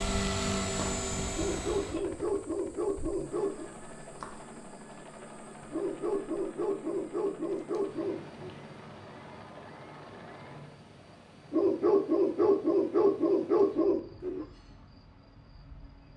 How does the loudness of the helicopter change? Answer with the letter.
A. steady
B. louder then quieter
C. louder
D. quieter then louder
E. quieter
E.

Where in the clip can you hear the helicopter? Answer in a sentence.
You can hear the helicopter from 0.0 to 10.8 s.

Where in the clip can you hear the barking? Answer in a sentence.
The barking can be heard from 1.4 to 3.7 s, from 5.7 to 8.6 s and from 11.5 to 14.4 s.